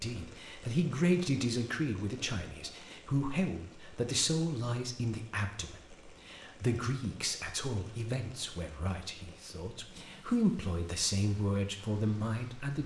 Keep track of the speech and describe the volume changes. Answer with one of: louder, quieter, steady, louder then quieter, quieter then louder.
quieter then louder.